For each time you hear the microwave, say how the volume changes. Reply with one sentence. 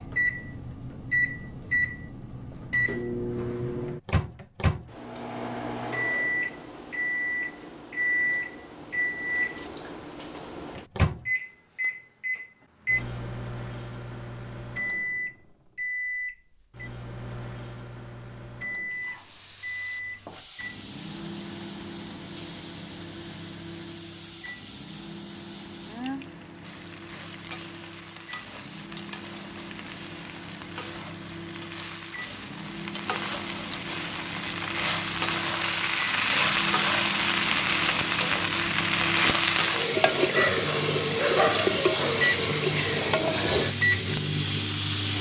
The microwave can be heard from 0.0 to 45.1 s, getting quieter then louder.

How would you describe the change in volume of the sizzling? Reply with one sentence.
The volume of the sizzling goes up.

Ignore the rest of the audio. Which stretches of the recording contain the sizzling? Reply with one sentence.
The sizzling can be heard from 18.9 to 45.1 s.